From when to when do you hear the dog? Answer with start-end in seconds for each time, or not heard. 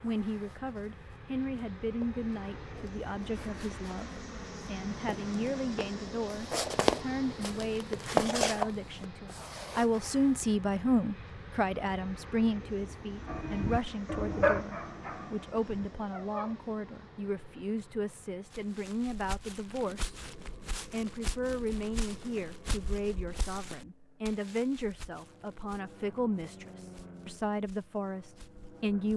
13.2-16.6.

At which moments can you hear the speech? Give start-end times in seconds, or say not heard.
0.0-20.1, 20.9-29.1.